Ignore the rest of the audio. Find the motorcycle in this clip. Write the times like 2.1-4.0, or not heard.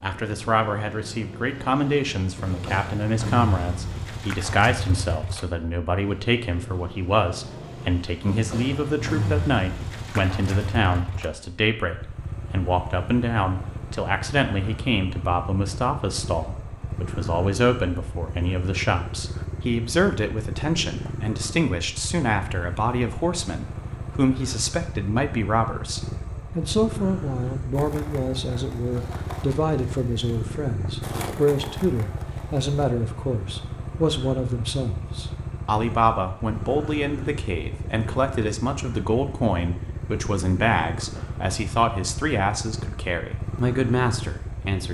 0.0-44.8.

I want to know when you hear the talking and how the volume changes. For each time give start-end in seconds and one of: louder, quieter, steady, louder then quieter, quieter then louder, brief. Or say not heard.
0.0-44.8 steady.